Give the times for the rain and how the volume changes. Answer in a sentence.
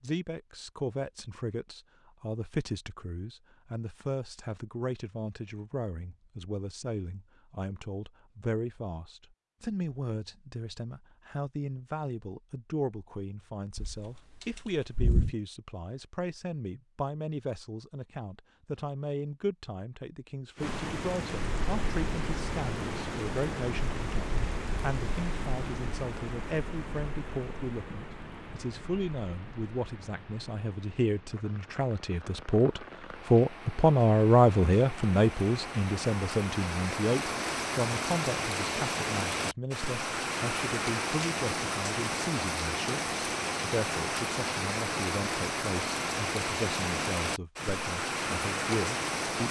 The rain can be heard from 20.6 to 49.4 s, getting quieter then louder.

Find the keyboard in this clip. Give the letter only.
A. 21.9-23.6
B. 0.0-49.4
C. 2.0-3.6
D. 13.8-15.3
D.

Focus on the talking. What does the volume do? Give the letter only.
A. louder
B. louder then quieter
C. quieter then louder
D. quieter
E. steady
B.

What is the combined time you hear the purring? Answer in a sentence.
You can't hear the purring here.